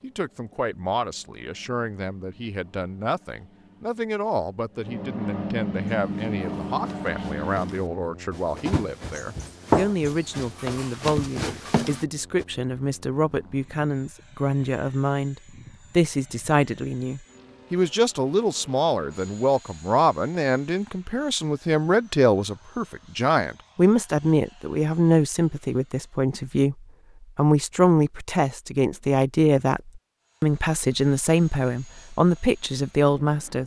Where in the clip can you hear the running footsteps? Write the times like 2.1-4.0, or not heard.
6.0-12.4.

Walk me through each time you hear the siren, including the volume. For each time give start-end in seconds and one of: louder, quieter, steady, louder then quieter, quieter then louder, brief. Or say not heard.
not heard.